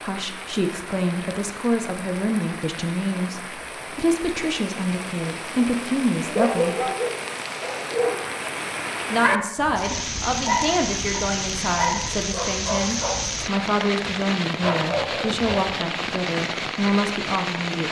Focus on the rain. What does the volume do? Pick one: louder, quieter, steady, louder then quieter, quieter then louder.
louder.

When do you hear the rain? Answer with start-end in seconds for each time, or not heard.
0.0-17.8.